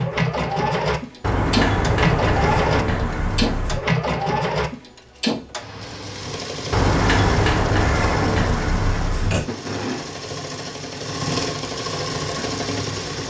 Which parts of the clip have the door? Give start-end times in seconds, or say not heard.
1.2-3.8, 6.7-9.5.